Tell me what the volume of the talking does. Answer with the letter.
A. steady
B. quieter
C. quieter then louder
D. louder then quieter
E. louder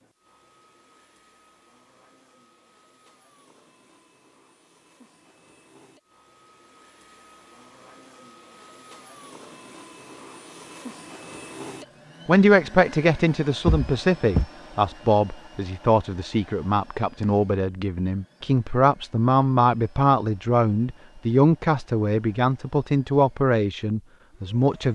A.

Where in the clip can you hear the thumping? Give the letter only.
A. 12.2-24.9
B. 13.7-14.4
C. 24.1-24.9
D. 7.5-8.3
B.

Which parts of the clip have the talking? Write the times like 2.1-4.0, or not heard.
12.2-24.9.